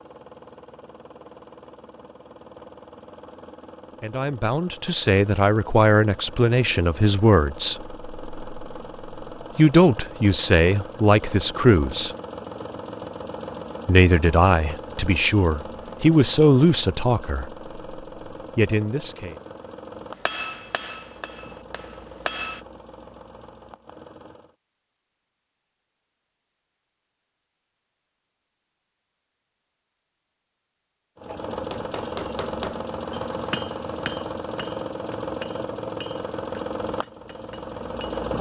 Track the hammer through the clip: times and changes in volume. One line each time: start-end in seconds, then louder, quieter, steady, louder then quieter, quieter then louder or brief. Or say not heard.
20.2-22.6 brief
31.5-38.3 quieter.